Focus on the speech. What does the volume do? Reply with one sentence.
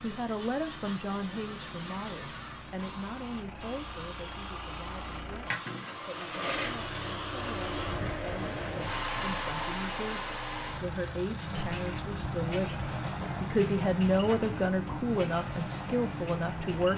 The loudness of the speech goes down, then up.